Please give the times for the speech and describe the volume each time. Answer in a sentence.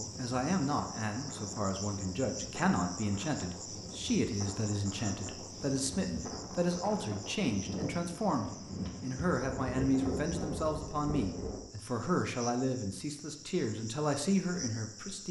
The speech can be heard from 0.0 to 15.2 s, at a steady volume.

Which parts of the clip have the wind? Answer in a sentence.
The wind can be heard from 0.0 to 11.7 s.